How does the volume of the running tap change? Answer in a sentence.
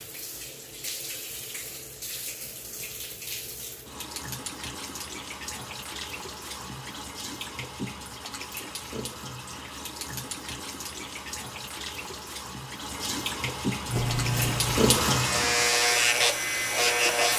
The volume of the running tap goes up.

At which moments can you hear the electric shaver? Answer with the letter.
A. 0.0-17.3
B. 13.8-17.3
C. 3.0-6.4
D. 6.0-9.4
B.